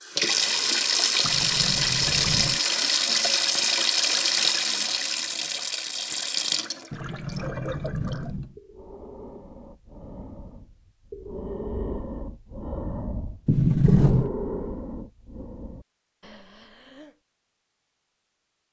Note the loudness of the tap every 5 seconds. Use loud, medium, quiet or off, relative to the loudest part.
loud, medium, off, off.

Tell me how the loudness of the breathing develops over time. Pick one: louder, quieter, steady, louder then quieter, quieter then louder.
louder then quieter.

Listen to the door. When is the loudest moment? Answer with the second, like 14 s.
14 s.